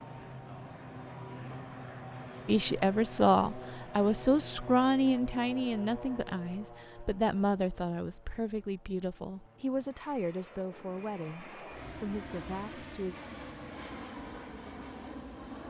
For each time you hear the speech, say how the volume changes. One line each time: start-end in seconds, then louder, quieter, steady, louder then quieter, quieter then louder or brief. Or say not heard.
2.5-13.2 quieter.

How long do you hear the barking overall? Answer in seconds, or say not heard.
not heard.